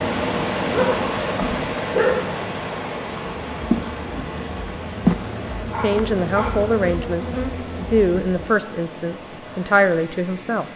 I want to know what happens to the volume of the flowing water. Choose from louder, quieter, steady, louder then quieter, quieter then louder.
quieter.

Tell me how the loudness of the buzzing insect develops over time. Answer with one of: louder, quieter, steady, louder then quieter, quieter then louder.
louder then quieter.